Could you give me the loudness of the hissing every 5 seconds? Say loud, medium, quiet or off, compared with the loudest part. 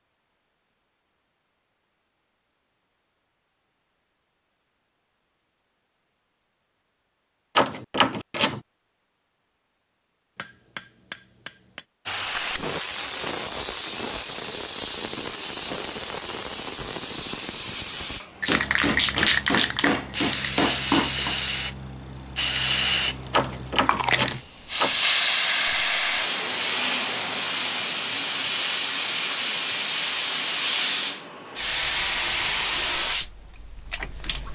off, off, loud, loud, loud, loud, loud.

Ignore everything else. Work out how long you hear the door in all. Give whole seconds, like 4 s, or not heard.
3 s.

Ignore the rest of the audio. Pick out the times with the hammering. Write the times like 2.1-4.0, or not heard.
10.3-11.8, 18.4-21.4.